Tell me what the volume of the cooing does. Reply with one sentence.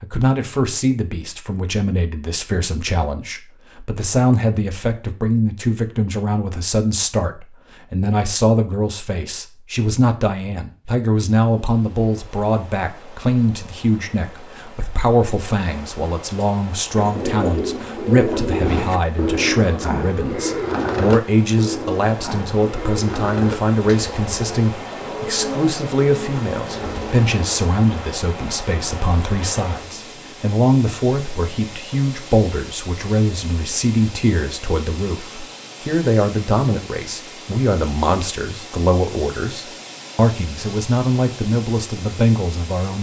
The volume of the cooing goes down.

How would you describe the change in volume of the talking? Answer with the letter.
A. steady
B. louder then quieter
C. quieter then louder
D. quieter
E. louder
A.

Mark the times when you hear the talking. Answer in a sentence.
The talking can be heard from 0.0 to 42.9 s.